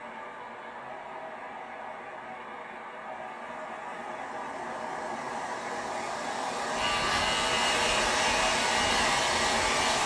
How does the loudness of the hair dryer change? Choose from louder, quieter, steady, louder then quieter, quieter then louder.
louder.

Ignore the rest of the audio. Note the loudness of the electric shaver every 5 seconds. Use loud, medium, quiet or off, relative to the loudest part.
off, loud.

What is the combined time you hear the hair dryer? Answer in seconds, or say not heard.
10 s.